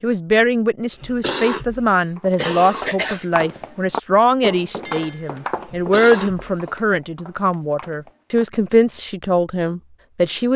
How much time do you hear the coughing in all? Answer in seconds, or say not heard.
3 s.